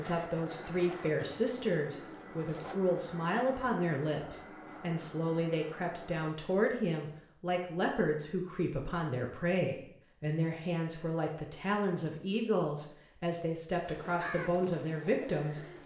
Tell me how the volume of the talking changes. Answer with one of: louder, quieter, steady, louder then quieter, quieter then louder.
steady.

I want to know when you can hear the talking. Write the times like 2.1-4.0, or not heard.
0.0-15.8.